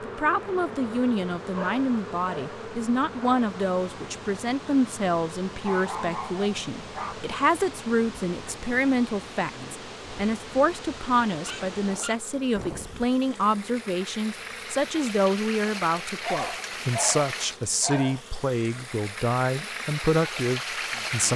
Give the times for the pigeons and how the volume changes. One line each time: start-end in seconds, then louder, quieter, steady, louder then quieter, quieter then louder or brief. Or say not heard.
not heard.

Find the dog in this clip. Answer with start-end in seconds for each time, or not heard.
1.6-3.5, 5.6-7.2, 11.4-13.1, 16.2-18.2.